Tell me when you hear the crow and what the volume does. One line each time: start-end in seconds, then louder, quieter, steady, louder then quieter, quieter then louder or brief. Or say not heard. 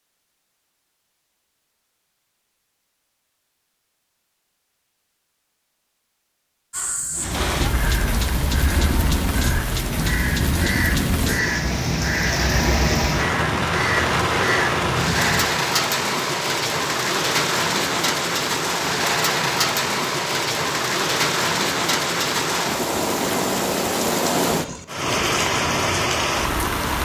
6.7-15.4 louder.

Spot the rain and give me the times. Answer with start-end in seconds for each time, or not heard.
7.1-27.0.